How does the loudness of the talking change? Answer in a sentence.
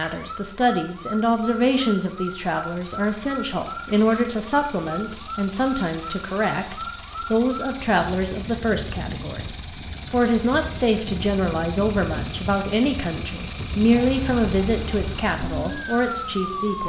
The loudness of the talking stays about the same.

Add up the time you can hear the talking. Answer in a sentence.
You can hear the talking for 16 seconds altogether.